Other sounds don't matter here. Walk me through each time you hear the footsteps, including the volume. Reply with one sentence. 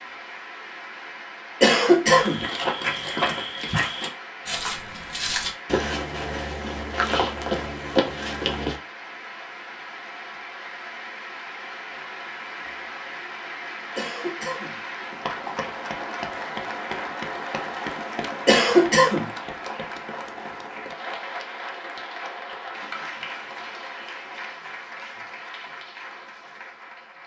The footsteps can be heard from 2.0 to 8.8 s, at a steady volume.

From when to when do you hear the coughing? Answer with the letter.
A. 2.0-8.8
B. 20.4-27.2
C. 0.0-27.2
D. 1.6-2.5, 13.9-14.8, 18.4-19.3
D.